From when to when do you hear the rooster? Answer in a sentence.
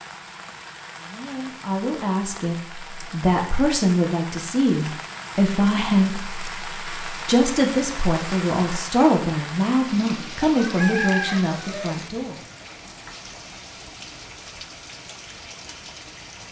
You can hear the rooster from 10.4 to 11.9 s.